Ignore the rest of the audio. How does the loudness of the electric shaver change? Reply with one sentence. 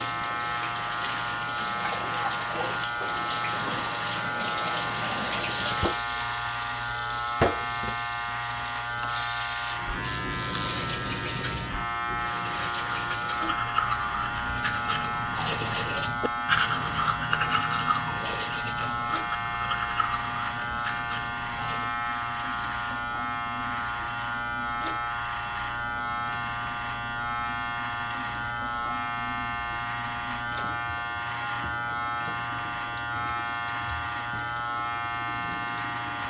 The volume of the electric shaver stays about the same.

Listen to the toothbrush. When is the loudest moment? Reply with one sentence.
The loudest moment of the toothbrush is at 17 seconds.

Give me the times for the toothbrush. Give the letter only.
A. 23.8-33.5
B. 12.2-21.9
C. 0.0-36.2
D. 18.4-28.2
B.